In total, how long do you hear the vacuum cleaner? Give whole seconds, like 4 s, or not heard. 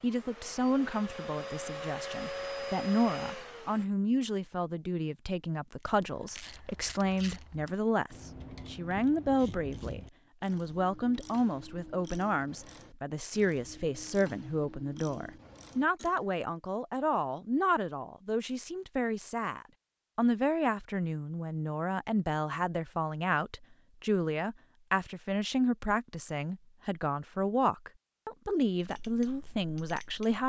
4 s.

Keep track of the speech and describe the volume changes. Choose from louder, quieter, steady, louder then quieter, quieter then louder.
steady.